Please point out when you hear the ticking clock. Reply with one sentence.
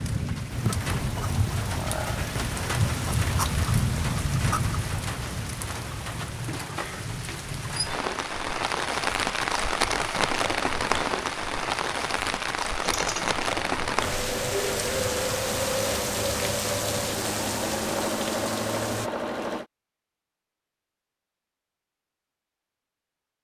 The ticking clock can't be heard in this clip.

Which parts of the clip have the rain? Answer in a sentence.
The rain can be heard from 0.0 to 19.1 s.